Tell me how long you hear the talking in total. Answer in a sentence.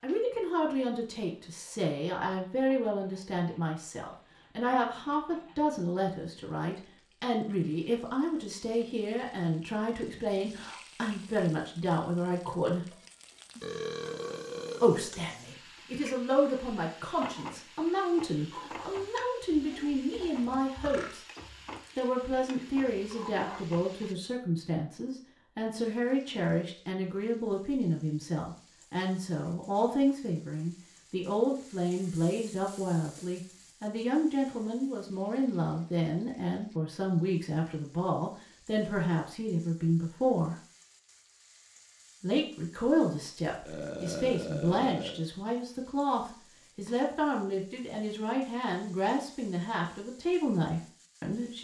You can hear the talking for 47 seconds altogether.